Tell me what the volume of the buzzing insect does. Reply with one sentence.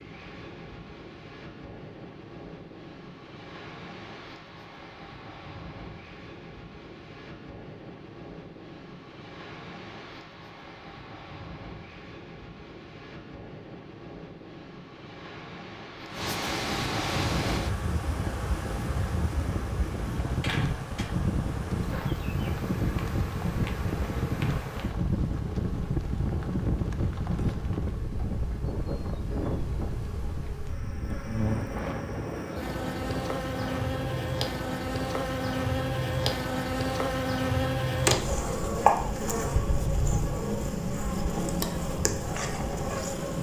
The volume of the buzzing insect goes up.